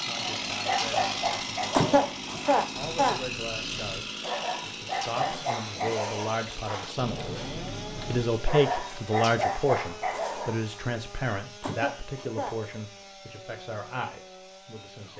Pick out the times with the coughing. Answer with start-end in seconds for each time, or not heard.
1.7-3.2, 11.6-12.8.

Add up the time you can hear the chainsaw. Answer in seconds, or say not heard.
15 s.